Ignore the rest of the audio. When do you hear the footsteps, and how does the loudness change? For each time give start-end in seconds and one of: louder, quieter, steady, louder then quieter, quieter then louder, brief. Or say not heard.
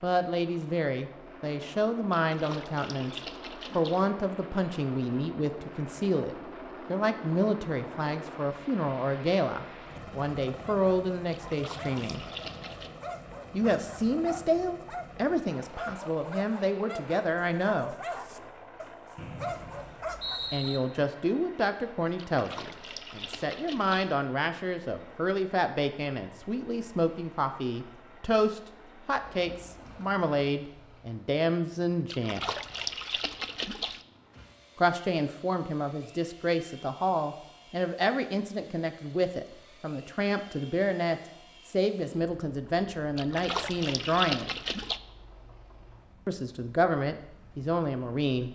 not heard.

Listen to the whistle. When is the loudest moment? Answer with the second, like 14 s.
20 s.